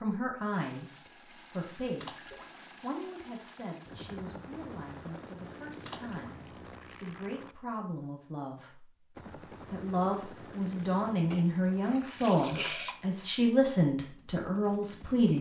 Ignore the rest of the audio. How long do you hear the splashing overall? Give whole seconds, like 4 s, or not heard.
3 s.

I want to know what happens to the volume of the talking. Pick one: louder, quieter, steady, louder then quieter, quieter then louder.
quieter then louder.